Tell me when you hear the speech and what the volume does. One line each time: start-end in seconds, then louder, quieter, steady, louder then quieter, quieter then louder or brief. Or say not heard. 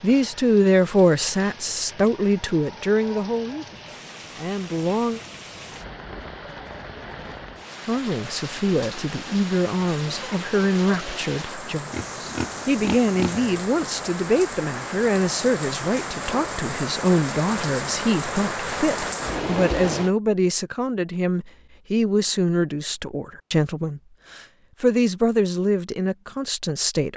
0.0-5.2 quieter
7.8-27.1 steady.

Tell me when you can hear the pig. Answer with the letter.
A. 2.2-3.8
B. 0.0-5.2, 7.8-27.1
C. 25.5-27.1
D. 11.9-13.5
D.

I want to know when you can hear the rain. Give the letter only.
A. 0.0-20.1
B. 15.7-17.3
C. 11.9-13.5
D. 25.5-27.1
A.